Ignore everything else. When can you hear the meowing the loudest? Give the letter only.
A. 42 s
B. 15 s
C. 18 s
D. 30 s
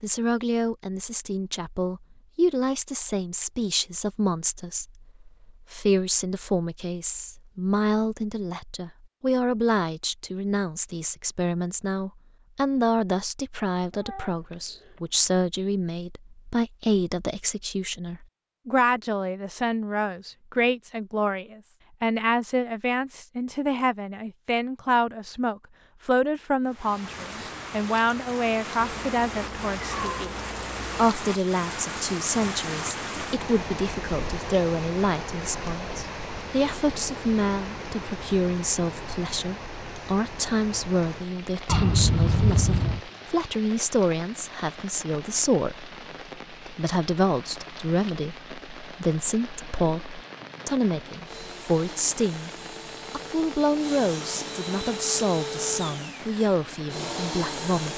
A.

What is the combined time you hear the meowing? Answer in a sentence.
You can hear the meowing for 5 seconds altogether.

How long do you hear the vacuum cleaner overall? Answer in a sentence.
The vacuum cleaner can be heard for 7 seconds in total.